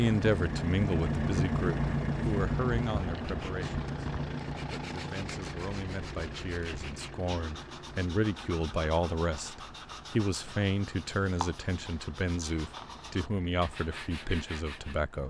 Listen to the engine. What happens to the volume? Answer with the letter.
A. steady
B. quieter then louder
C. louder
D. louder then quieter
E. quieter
E.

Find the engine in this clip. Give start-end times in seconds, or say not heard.
0.0-15.2.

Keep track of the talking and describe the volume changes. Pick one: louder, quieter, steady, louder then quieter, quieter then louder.
quieter then louder.